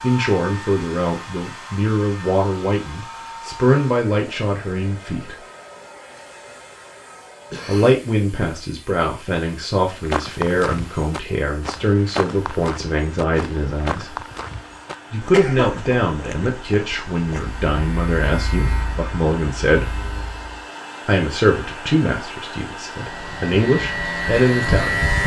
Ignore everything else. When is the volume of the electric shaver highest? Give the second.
25 s.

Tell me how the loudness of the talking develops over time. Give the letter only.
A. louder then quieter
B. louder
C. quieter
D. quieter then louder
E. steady
E.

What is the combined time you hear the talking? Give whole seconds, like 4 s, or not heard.
21 s.